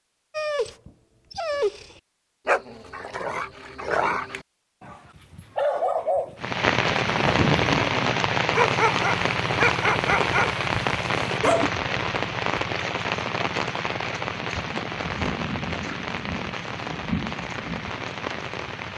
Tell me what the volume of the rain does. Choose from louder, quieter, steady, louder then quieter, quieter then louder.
quieter.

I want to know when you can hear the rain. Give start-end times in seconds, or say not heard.
6.3-18.9.